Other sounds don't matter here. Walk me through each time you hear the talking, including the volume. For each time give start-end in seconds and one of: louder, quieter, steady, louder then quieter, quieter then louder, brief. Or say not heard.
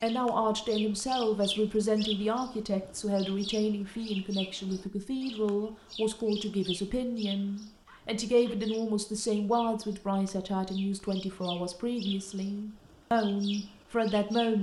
0.0-14.5 steady.